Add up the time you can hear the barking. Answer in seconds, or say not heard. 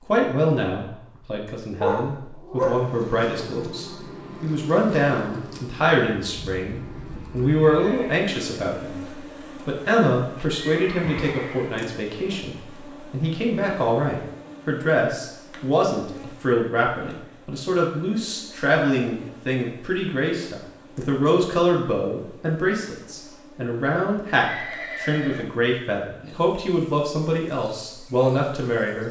2 s.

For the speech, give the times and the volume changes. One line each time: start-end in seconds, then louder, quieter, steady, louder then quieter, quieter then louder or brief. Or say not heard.
0.1-29.0 steady.